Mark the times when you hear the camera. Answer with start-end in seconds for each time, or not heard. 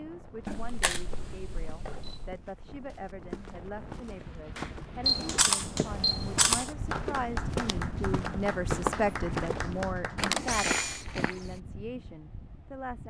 0.5-2.4, 5.0-6.8, 10.2-11.1.